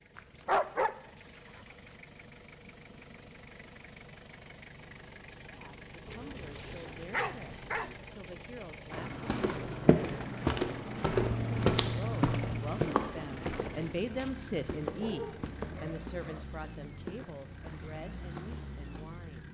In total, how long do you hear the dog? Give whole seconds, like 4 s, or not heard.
6 s.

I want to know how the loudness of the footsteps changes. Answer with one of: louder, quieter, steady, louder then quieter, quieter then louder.
quieter.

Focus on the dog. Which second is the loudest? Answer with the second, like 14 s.
1 s.